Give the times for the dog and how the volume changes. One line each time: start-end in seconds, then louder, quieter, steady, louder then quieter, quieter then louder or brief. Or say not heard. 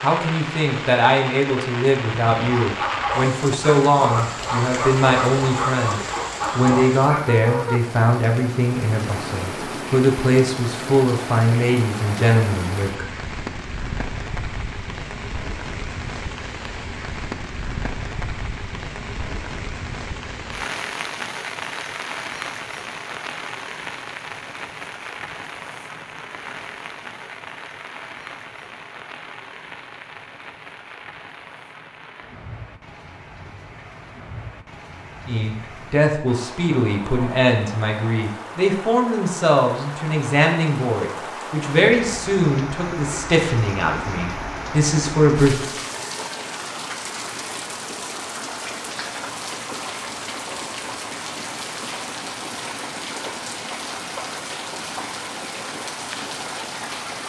2.4-7.7 steady.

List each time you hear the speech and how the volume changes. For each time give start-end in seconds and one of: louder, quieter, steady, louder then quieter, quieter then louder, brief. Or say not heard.
0.0-13.1 steady
35.2-45.5 steady.